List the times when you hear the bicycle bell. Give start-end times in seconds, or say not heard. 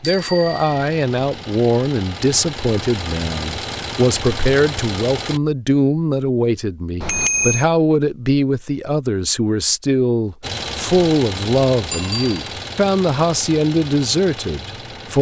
0.0-0.9, 7.0-7.7, 11.9-12.5.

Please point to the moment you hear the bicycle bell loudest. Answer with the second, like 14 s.
7 s.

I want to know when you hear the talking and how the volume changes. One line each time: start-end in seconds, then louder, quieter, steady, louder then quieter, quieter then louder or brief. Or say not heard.
0.0-15.1 steady.